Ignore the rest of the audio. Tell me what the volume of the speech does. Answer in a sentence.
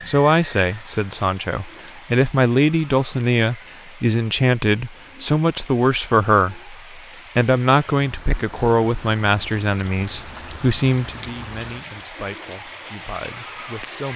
The volume of the speech goes down.